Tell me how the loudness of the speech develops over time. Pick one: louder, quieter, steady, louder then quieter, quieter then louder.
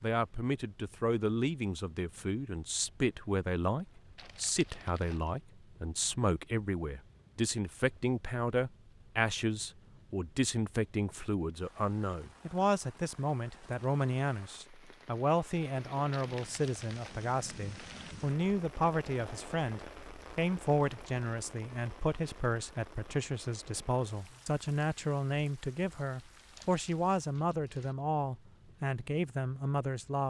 steady.